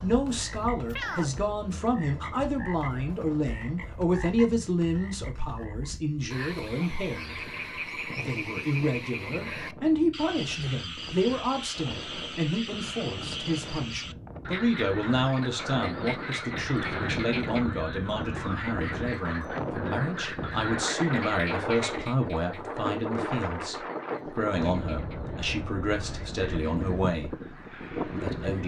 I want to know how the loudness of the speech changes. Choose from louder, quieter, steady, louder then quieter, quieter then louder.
steady.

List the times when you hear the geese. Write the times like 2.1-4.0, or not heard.
not heard.